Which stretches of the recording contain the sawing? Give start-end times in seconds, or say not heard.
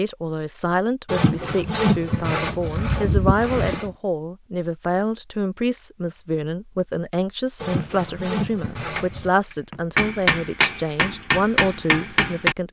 1.1-3.9, 7.6-9.3.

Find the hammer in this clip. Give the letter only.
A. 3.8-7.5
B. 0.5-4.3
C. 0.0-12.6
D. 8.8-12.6
D.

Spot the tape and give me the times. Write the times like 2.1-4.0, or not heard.
not heard.